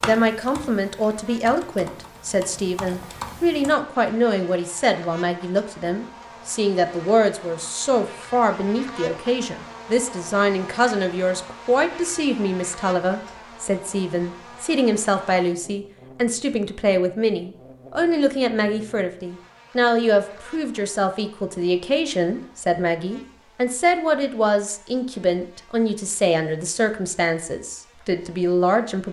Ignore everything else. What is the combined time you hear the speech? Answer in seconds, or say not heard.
29 s.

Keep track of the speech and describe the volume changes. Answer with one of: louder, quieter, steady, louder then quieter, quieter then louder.
steady.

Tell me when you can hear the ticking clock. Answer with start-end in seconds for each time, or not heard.
not heard.